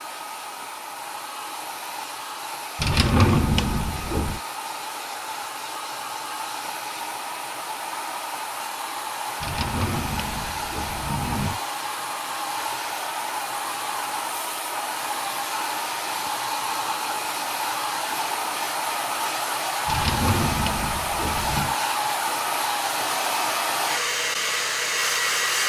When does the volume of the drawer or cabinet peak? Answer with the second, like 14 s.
3 s.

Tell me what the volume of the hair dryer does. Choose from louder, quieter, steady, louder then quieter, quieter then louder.
louder.